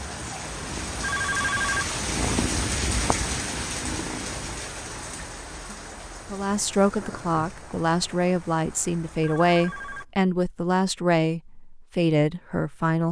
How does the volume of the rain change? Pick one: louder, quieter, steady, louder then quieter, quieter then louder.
quieter.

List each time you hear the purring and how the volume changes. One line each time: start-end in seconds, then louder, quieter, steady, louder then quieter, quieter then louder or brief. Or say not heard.
0.0-5.2 louder then quieter.